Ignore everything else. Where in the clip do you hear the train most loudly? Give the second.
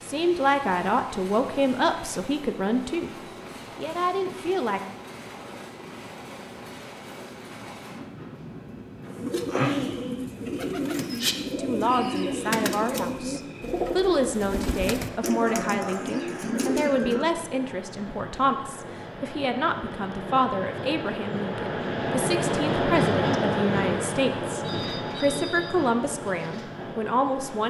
23 s.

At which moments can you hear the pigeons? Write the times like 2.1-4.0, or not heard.
9.1-17.2.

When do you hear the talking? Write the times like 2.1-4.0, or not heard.
0.1-4.8, 11.6-27.6.